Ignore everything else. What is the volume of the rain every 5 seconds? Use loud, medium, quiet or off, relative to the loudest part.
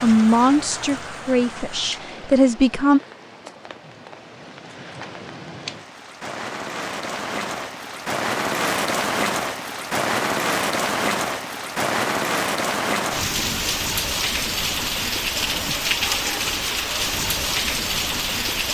quiet, loud, loud, loud.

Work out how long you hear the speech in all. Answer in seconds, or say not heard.
3 s.